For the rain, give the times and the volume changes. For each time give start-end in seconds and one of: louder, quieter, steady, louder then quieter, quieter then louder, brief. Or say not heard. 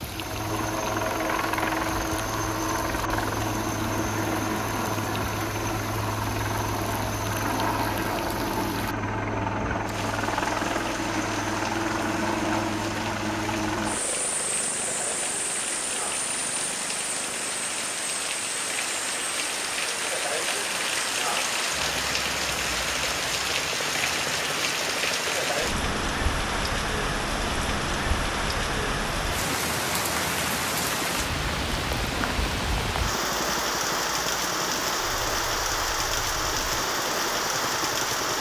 0.0-38.3 louder.